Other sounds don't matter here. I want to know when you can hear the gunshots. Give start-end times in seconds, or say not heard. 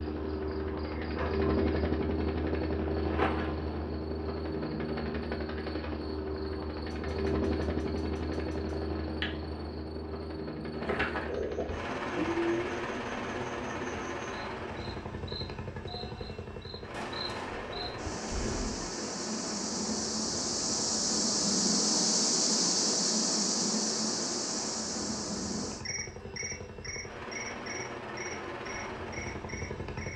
6.9-8.8, 16.9-18.9.